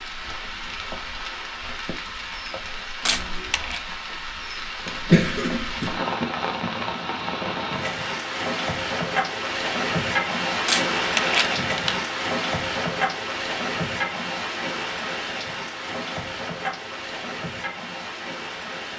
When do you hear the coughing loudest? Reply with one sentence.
The loudest moment of the coughing is at 5 seconds.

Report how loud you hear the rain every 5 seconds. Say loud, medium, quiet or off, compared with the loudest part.
medium, loud, loud, medium.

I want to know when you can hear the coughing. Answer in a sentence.
The coughing can be heard from 4.8 to 6.8 s.